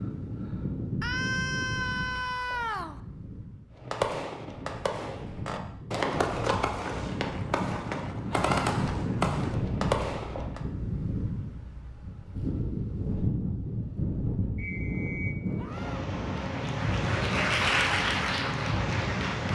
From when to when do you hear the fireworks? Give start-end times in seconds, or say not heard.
3.8-10.6.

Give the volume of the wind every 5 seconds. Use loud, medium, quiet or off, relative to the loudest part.
medium, loud, loud, loud.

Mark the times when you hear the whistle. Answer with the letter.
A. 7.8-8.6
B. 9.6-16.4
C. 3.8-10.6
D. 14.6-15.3
D.